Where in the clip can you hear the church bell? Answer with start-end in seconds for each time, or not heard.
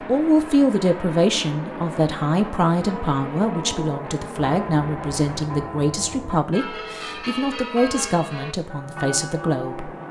2.8-10.0.